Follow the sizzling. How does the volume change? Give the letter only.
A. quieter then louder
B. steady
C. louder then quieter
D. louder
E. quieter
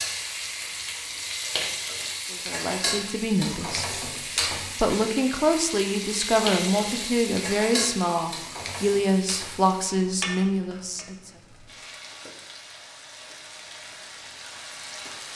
E.